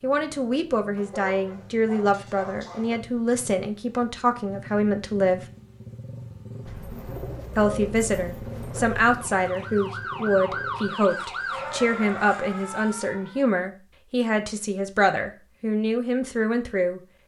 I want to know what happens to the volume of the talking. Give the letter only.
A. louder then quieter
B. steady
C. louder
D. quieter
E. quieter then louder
B.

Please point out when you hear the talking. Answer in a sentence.
You can hear the talking from 0.0 to 5.4 s and from 7.5 to 17.0 s.